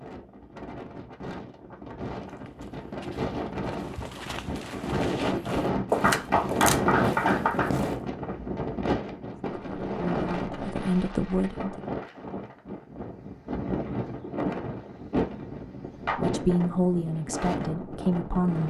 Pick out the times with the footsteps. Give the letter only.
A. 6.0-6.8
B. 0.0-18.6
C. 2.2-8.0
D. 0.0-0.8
C.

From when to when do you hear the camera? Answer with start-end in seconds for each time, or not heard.
6.0-6.8.